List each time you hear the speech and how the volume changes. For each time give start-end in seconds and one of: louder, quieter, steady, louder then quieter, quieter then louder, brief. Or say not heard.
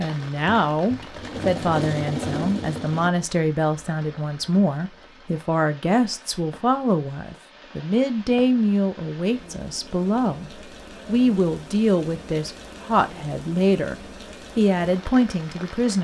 0.0-16.0 steady.